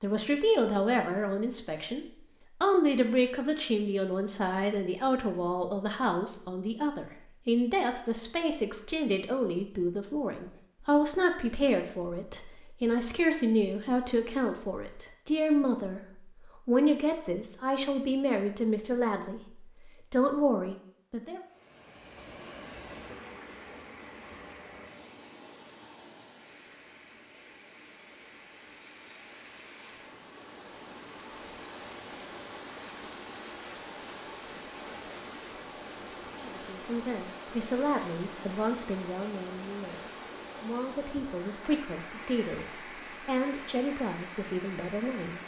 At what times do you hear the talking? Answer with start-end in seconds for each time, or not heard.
0.0-21.4, 36.4-45.4.